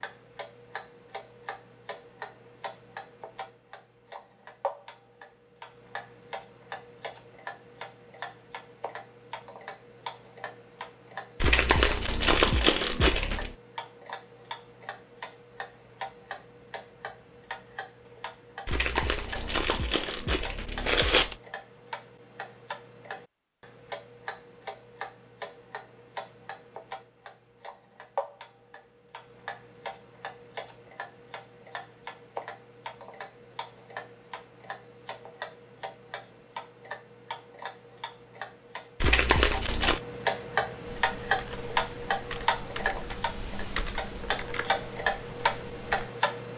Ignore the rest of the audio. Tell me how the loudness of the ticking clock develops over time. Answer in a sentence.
The volume of the ticking clock goes up.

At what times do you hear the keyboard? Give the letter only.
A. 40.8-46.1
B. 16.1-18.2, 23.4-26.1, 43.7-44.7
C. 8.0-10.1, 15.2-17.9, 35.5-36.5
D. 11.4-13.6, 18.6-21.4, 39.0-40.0
A.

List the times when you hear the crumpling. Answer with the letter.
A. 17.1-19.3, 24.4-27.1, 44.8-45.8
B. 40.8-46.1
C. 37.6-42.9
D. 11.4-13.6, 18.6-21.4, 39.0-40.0
D.